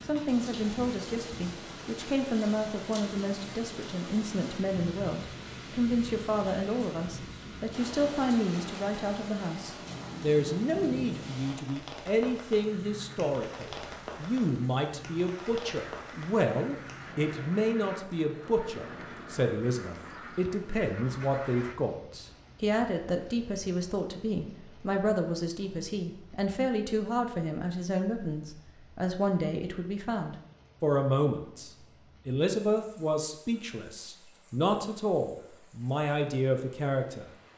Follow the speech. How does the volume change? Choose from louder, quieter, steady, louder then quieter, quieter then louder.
steady.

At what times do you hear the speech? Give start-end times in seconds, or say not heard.
0.1-37.3.